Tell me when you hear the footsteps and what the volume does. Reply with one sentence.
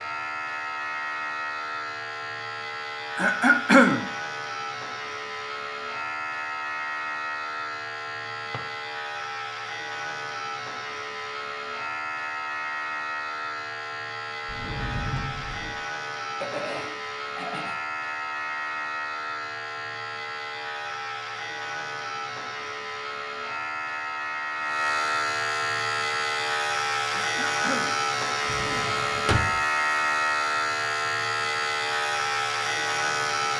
You can't hear the footsteps here.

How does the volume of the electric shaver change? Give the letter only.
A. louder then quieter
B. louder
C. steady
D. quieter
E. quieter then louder
B.